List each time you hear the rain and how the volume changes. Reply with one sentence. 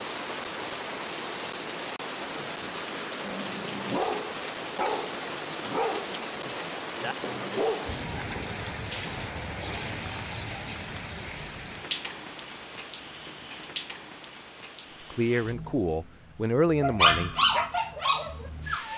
The rain can be heard from 0.0 to 18.9 s, getting quieter.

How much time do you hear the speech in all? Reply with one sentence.
You can hear the speech for 2 seconds altogether.